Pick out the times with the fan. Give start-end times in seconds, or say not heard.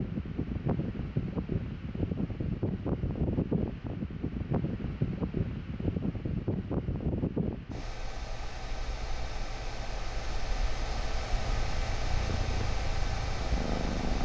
0.0-14.1.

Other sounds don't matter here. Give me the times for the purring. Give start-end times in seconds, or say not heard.
11.6-14.1.